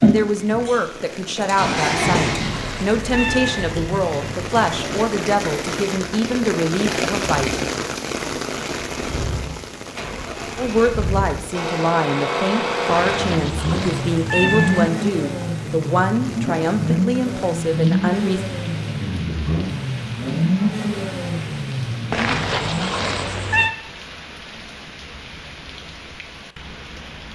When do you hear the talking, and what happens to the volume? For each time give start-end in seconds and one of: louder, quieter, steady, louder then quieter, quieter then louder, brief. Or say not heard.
0.0-7.5 steady
10.6-18.4 steady.